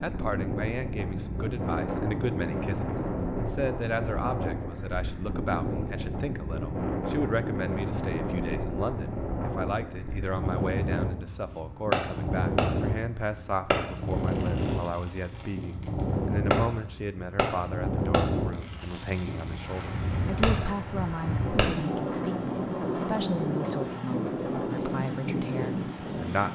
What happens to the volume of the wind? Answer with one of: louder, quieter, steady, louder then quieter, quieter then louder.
steady.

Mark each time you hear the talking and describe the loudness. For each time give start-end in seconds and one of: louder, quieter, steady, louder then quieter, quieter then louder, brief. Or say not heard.
0.0-26.4 steady.